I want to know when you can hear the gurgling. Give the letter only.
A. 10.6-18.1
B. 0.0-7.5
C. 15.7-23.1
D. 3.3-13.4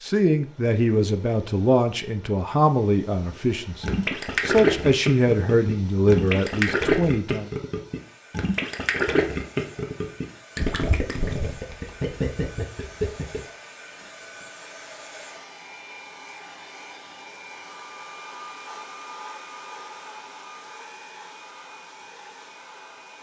D.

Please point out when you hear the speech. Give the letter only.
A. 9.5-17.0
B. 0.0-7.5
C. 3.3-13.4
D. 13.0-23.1
B.